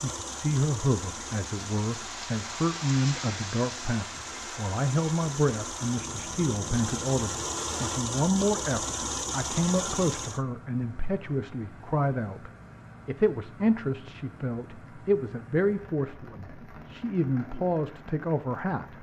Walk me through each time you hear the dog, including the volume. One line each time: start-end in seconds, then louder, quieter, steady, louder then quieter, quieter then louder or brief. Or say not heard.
not heard.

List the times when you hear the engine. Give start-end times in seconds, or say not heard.
0.0-10.4.